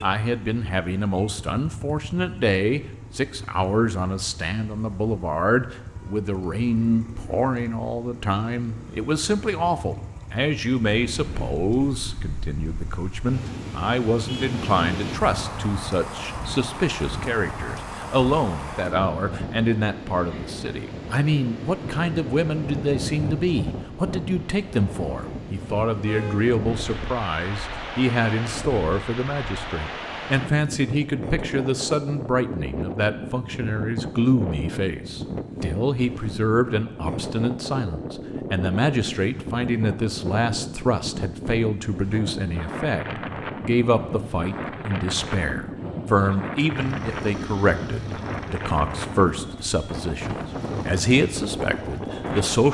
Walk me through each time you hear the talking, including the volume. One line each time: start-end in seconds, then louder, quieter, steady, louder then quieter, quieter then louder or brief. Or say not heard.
0.0-52.7 steady.